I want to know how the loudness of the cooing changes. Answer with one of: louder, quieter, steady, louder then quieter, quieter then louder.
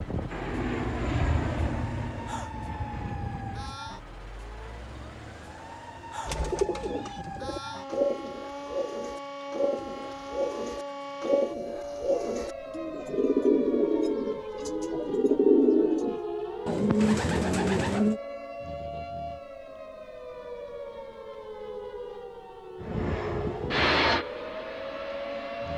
louder.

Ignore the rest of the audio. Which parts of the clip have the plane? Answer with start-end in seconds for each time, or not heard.
0.0-3.9, 22.8-25.7.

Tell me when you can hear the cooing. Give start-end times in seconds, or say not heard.
6.2-18.2.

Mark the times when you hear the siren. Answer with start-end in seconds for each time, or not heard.
0.0-25.7.